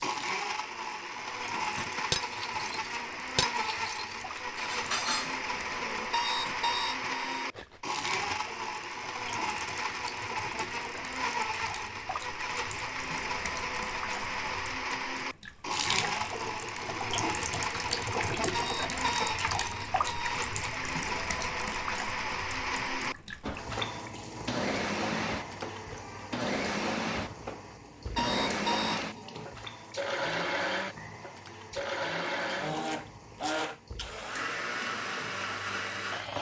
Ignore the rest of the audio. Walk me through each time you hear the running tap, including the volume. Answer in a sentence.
The running tap can be heard from 0.0 to 36.3 s, getting louder then quieter.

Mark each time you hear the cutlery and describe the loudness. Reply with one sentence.
You can hear the cutlery from 1.6 to 8.4 s, getting quieter.